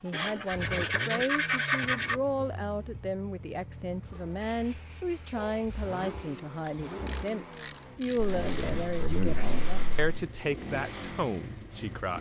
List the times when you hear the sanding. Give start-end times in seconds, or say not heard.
0.1-2.1, 4.4-6.4, 8.2-10.1.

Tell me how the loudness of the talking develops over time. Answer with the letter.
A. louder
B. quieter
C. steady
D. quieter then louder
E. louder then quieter
C.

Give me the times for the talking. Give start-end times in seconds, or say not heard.
0.0-12.1.